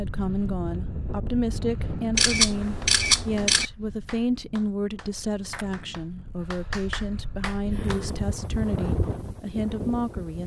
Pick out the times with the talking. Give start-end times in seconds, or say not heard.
0.0-10.4.